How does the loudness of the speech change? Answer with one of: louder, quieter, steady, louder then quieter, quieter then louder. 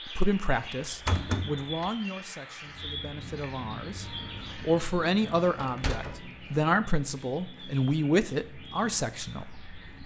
quieter then louder.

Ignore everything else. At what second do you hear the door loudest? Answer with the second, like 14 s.
1 s.